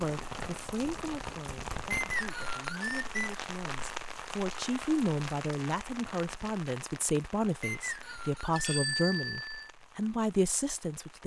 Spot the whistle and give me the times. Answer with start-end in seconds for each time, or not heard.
1.9-3.4, 7.6-8.8.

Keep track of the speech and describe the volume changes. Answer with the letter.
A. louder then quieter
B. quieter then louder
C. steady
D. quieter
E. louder
E.